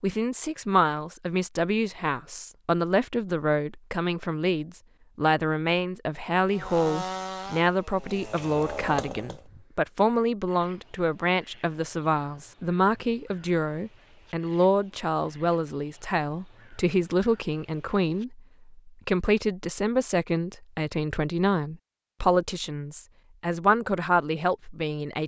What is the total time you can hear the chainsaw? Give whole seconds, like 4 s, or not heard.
3 s.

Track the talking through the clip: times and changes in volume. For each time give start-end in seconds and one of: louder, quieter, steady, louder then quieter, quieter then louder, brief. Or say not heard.
0.0-25.2 steady.